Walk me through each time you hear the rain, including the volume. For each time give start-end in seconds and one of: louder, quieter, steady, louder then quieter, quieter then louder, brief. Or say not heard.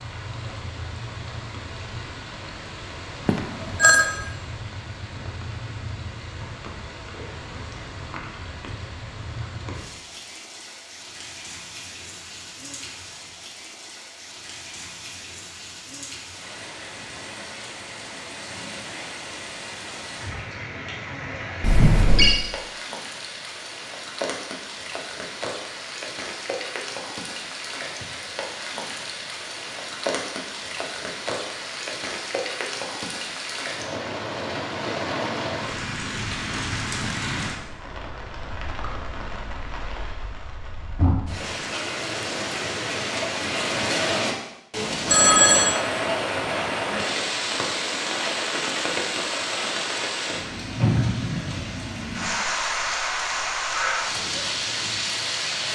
0.0-55.6 louder.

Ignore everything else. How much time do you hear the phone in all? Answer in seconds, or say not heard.
2 s.